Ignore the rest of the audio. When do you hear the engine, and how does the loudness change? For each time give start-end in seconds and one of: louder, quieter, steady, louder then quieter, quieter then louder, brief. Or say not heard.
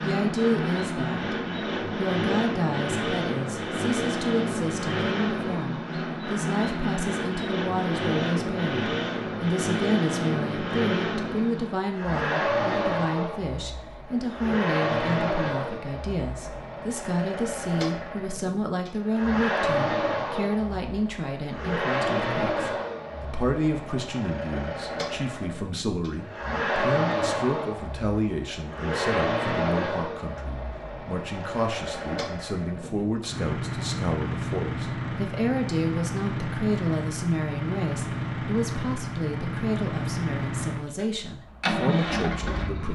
0.0-42.9 steady.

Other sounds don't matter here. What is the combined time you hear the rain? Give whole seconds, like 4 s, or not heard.
not heard.